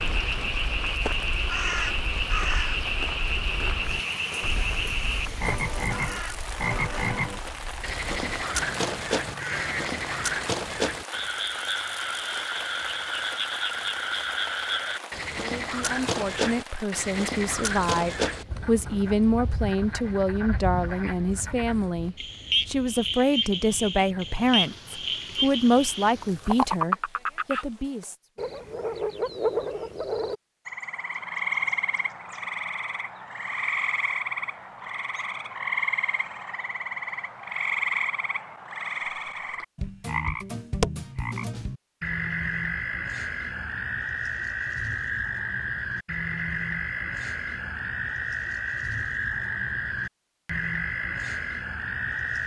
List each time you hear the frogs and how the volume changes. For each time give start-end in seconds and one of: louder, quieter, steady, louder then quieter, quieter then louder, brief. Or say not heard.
0.0-52.4 steady.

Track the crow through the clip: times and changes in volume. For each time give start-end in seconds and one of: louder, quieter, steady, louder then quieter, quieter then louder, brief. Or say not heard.
0.0-10.4 quieter then louder.